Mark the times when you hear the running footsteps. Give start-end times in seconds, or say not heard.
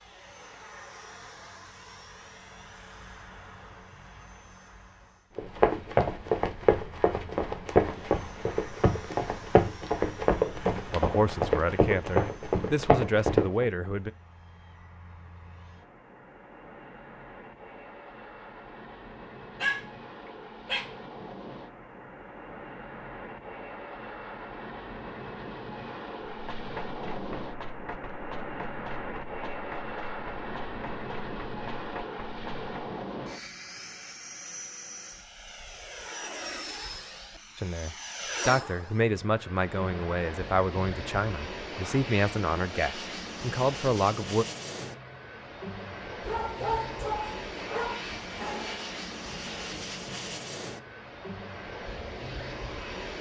5.3-13.7, 26.3-32.7.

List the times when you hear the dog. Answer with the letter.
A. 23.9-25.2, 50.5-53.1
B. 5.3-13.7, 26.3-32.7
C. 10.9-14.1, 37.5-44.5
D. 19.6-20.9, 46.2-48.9
D.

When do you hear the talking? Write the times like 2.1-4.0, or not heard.
10.9-14.1, 37.5-44.5.